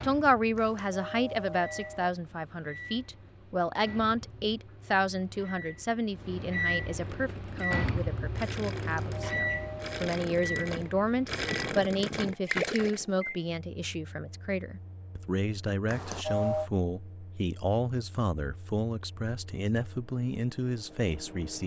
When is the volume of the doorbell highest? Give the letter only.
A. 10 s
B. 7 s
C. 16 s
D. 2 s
C.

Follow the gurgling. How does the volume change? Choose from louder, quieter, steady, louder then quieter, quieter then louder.
louder.